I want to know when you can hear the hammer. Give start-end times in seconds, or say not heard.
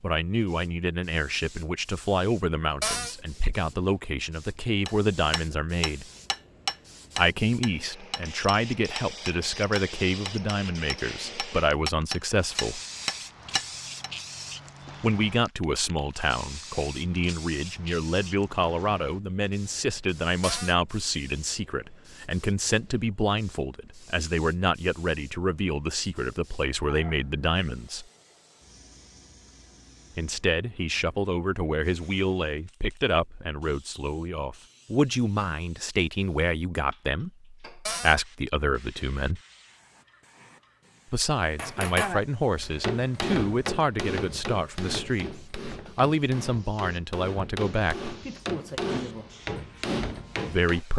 4.8-14.1, 41.5-50.8.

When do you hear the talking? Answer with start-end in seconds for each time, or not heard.
0.0-6.1, 7.2-12.8, 15.0-28.1, 30.1-39.4, 41.1-48.1, 50.5-50.9.